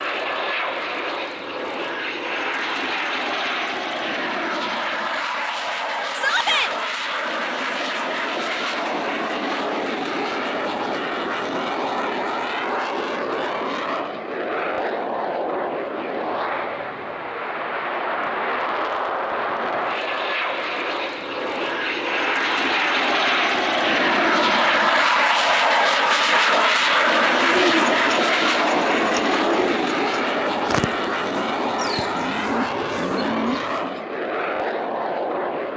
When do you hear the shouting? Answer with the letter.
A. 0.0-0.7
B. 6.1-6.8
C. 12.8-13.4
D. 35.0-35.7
B.